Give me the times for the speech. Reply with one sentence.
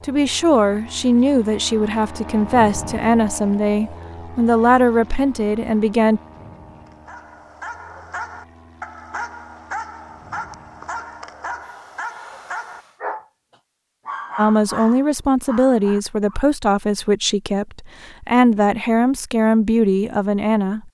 The speech can be heard from 0.0 to 6.2 s and from 14.3 to 20.8 s.